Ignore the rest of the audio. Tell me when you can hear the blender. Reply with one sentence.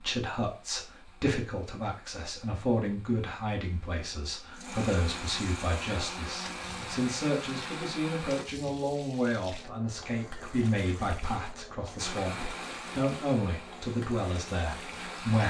The blender can be heard from 0.0 to 8.4 s and from 11.9 to 15.4 s.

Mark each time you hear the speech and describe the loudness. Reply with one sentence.
You can hear the speech from 0.0 to 15.4 s, at a steady volume.